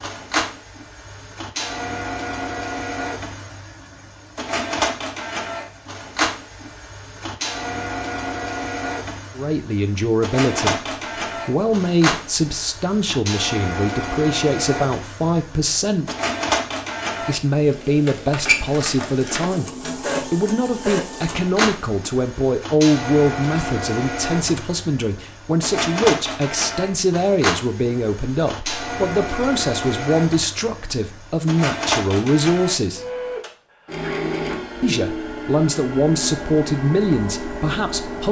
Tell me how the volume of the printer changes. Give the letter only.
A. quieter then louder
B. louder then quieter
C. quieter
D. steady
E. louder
D.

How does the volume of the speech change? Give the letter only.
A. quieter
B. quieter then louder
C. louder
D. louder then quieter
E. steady
E.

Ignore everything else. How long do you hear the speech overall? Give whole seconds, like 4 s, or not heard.
26 s.